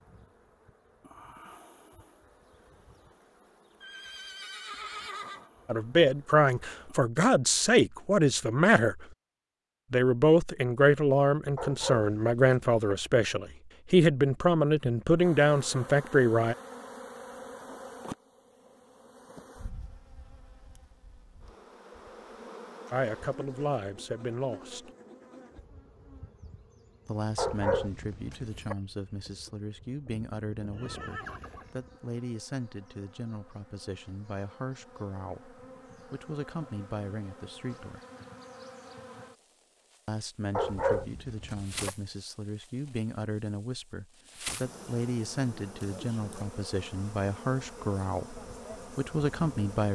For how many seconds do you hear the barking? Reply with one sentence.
You can hear the barking for 4 seconds altogether.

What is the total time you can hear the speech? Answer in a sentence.
The speech can be heard for 33 seconds in total.